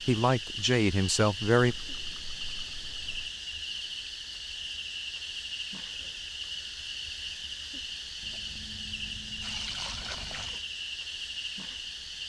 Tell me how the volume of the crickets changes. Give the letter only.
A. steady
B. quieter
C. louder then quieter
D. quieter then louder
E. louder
A.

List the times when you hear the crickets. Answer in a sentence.
You can hear the crickets from 0.0 to 12.2 s.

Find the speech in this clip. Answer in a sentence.
The speech can be heard from 0.1 to 1.8 s.